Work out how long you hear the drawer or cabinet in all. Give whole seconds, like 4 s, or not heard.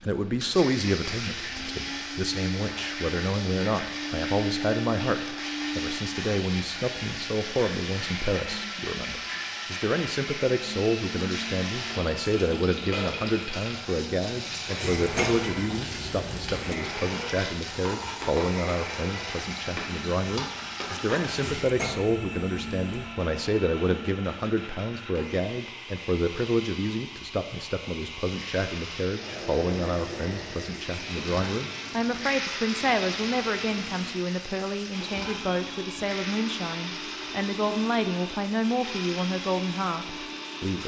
4 s.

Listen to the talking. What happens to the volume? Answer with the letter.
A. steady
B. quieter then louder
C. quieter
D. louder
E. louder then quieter
A.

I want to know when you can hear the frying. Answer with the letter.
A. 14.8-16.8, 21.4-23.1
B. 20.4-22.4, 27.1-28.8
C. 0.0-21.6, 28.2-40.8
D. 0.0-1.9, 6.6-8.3
C.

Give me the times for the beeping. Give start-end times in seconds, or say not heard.
not heard.